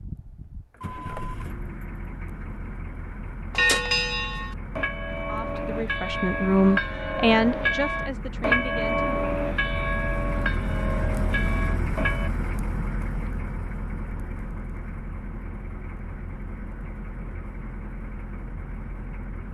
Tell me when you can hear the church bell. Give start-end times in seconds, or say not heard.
3.5-12.3.